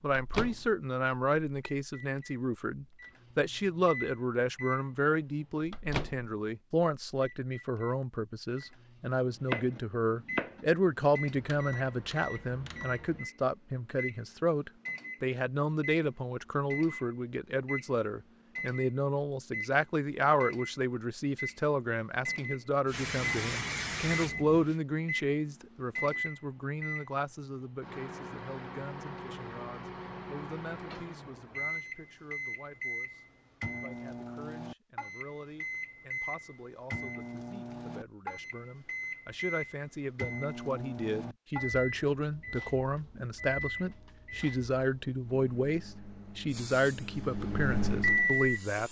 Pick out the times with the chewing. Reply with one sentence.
The chewing can't be heard in this clip.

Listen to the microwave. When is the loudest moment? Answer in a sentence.
The volume of the microwave peaks at 48 seconds.